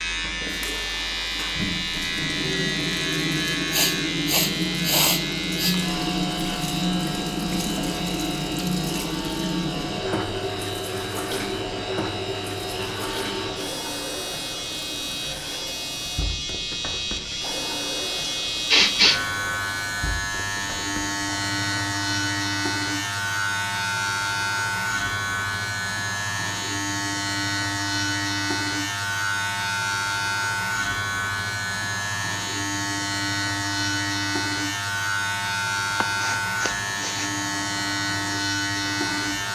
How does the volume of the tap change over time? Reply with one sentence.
The loudness of the tap goes down.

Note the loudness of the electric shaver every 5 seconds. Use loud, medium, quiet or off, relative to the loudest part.
loud, medium, medium, loud, loud, loud, loud, loud.